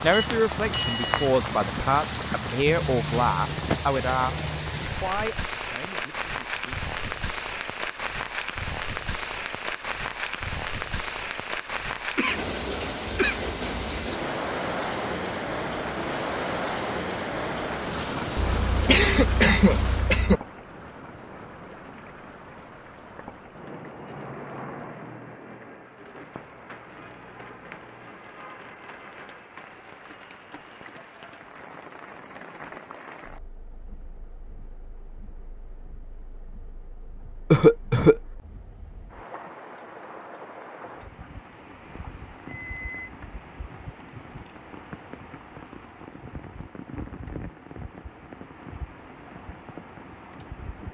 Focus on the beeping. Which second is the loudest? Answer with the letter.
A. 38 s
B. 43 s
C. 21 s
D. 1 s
D.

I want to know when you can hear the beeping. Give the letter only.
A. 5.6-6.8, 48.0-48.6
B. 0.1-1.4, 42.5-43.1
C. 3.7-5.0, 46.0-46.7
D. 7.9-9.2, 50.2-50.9
B.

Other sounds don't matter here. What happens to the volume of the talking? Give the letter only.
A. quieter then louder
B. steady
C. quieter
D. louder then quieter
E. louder
C.